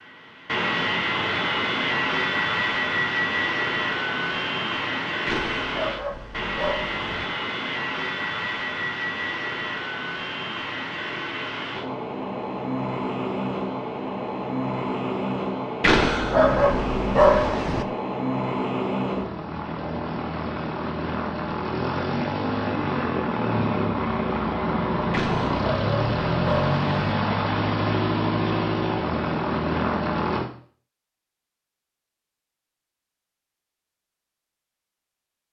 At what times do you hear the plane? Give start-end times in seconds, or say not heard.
0.0-30.5.